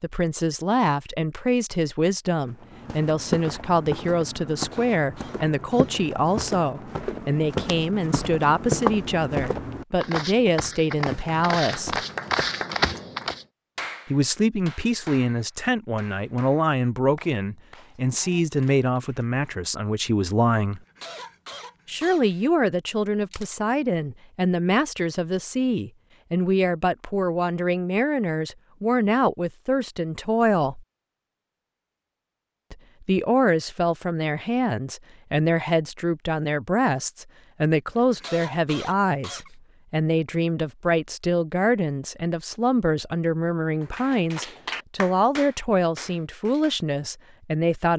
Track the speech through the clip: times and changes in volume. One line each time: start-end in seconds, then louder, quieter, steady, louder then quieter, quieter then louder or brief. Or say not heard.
0.0-12.0 steady
14.1-20.8 steady
21.9-30.8 steady
32.7-47.9 steady.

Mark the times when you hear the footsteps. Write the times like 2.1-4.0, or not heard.
2.5-13.4.